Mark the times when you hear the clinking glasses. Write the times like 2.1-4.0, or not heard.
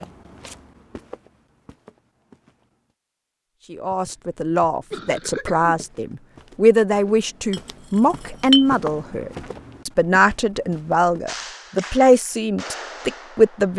7.5-8.7.